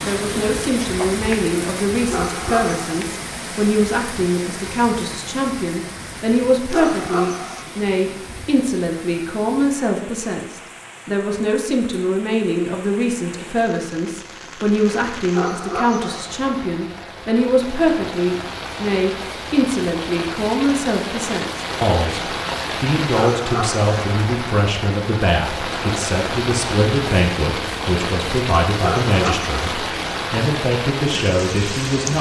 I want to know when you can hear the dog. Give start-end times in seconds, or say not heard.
2.0-3.0, 6.7-7.7, 15.3-16.2, 23.1-23.9, 28.8-29.6.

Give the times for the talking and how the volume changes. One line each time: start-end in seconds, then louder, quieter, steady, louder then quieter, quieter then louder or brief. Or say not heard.
0.0-32.1 steady.